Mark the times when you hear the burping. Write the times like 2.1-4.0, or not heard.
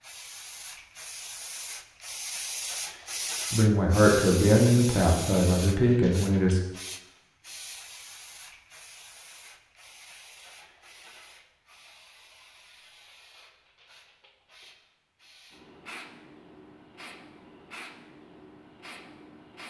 not heard.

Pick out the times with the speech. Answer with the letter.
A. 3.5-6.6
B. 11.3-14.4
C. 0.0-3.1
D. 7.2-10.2
A.